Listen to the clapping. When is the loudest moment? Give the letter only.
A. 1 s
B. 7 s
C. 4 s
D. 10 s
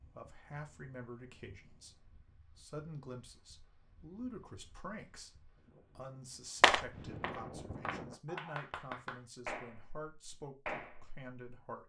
B.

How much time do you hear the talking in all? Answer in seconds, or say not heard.
12 s.